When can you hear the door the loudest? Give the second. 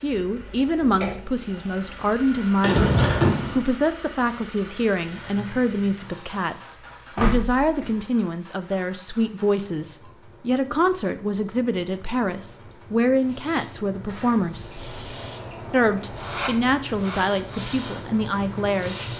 3 s.